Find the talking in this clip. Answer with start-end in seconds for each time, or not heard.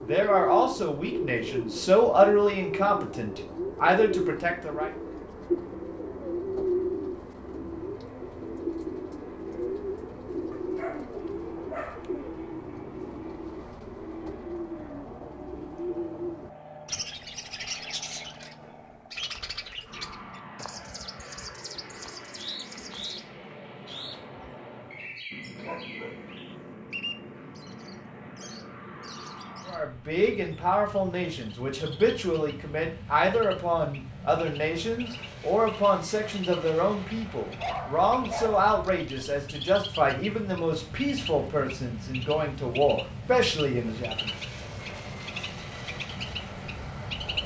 0.0-5.0, 29.6-44.3.